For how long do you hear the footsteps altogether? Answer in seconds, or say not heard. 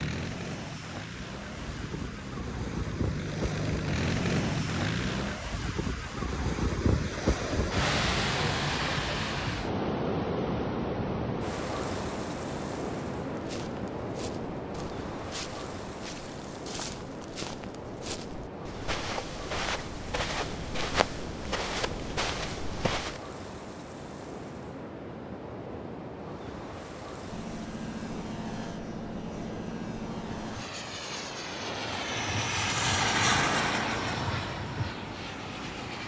10 s.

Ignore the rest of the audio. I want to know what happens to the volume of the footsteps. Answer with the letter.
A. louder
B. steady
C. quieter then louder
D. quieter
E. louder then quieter
A.